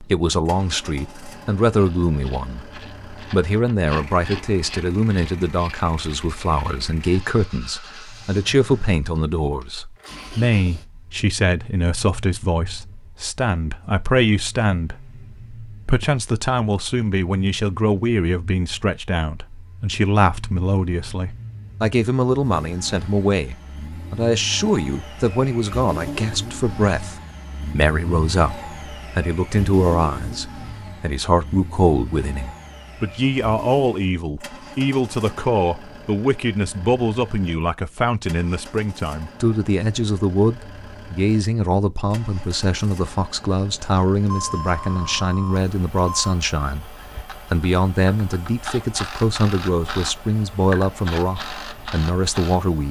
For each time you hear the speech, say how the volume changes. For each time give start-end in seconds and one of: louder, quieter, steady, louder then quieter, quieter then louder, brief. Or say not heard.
0.0-52.8 steady.